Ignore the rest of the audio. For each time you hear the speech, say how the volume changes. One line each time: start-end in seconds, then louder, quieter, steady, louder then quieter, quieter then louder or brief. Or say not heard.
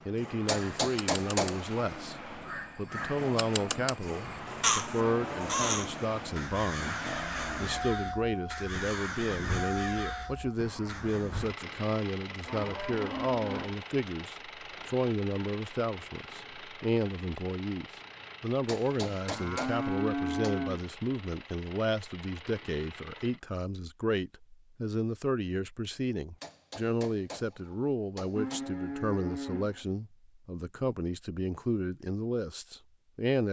0.1-33.4 steady.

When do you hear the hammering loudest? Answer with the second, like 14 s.
1 s.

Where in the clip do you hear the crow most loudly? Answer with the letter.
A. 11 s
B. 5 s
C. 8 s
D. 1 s
B.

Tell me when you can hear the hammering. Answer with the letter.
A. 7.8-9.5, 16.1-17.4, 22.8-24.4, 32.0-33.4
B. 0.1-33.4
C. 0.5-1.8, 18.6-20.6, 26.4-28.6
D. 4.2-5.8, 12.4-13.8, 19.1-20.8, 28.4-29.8
C.